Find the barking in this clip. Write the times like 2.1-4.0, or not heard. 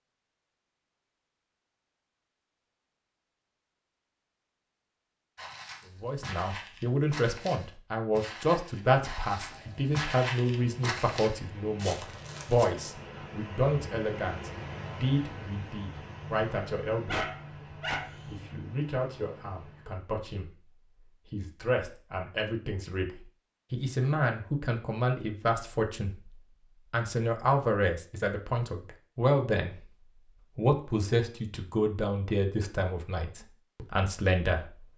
17.1-18.6.